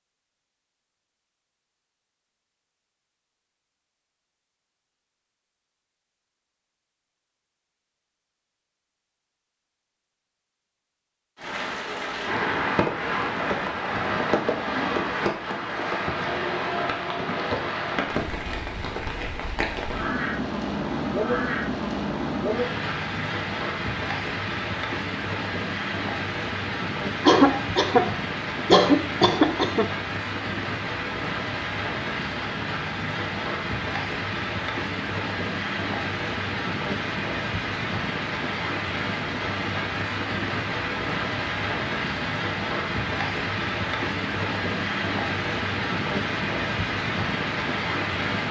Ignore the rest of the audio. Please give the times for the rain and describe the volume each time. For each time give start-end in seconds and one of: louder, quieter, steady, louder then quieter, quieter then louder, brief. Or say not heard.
11.3-48.4 steady.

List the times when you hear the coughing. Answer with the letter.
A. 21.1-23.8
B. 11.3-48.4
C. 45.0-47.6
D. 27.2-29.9
D.